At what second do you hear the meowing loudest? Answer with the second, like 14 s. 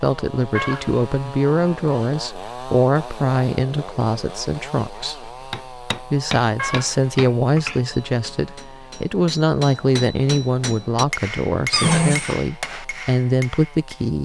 12 s.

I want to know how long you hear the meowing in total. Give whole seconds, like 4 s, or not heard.
2 s.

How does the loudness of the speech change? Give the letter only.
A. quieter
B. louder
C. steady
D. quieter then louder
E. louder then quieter
C.